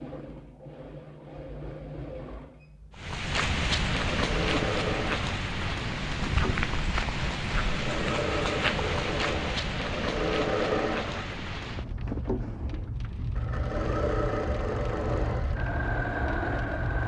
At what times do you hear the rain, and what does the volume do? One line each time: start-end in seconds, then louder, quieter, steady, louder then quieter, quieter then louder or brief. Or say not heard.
3.0-17.0 quieter.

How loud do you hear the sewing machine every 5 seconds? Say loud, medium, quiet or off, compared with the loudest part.
medium, loud, loud, loud.